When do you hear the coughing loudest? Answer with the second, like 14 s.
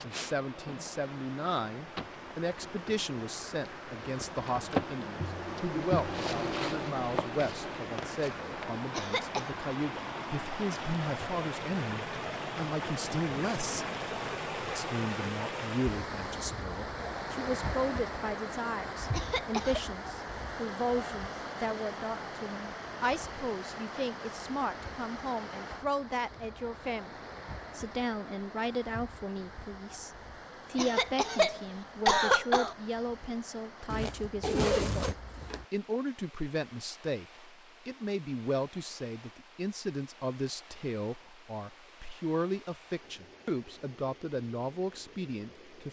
32 s.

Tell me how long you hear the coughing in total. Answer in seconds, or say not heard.
3 s.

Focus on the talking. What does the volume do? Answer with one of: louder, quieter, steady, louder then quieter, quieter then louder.
steady.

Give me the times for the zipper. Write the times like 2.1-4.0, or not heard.
33.9-35.6.